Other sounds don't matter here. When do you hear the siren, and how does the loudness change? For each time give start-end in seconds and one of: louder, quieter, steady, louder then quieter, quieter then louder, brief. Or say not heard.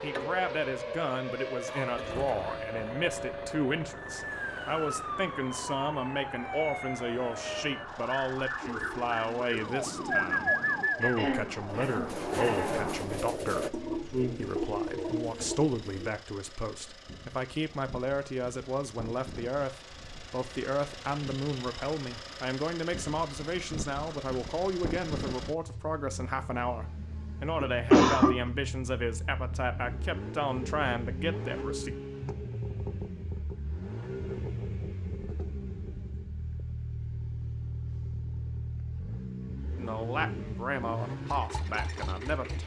0.0-13.0 steady.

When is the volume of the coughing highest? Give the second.
28 s.